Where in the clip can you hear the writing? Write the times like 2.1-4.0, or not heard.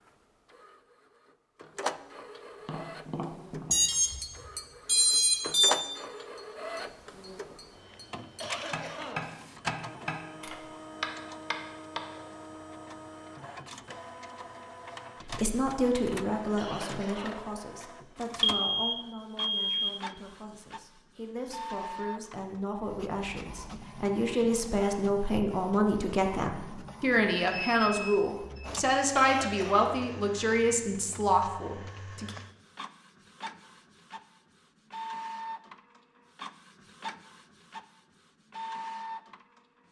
not heard.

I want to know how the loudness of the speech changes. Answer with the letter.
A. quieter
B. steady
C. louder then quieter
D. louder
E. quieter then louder
E.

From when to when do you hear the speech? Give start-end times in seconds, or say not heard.
15.2-32.3.